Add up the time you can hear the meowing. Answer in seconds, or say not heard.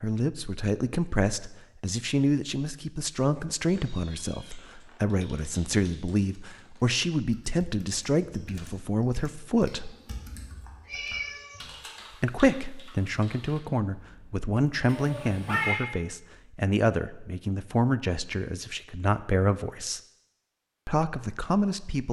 4 s.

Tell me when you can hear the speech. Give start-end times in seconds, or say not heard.
0.0-9.9, 12.2-20.0, 20.9-22.0.